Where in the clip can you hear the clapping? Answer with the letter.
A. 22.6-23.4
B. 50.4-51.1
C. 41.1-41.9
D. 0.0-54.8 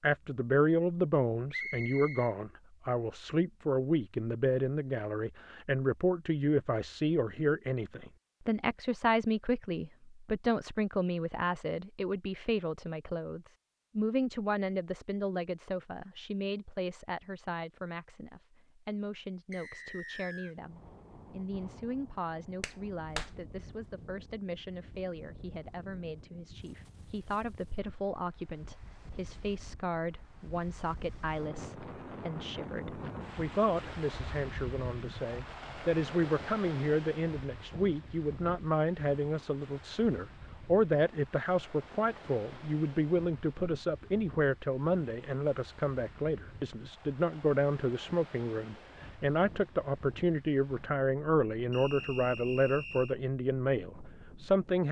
A.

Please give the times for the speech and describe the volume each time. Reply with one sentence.
The speech can be heard from 0.0 to 54.8 s, getting quieter then louder.